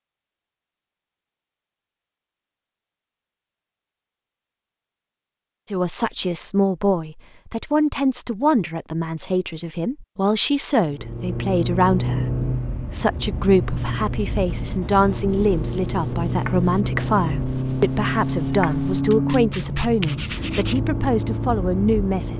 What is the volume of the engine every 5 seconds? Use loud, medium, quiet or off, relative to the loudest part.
off, off, loud, loud, loud.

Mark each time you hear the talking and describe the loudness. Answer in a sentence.
The talking can be heard from 5.7 to 22.3 s, at a steady volume.